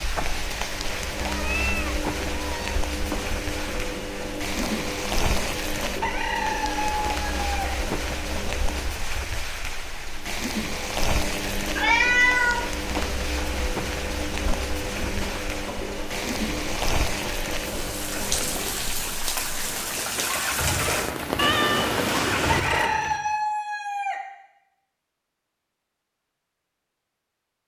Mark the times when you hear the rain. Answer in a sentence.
The rain can be heard from 0.0 to 22.2 s.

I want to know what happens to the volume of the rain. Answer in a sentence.
The volume of the rain stays about the same.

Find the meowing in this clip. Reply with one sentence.
The meowing can be heard from 1.2 to 2.8 s, from 11.8 to 12.7 s and from 21.4 to 22.6 s.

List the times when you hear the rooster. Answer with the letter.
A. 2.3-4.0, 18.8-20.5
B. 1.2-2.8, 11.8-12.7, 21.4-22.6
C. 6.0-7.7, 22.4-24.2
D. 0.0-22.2
C.